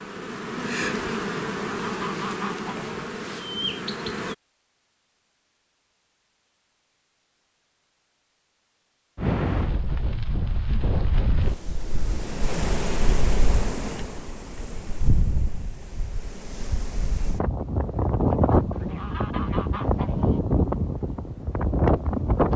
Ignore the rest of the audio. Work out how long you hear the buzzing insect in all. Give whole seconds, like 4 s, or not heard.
4 s.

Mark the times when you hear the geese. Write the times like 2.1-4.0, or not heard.
1.6-3.1, 18.7-20.4.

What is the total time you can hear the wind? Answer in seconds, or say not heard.
13 s.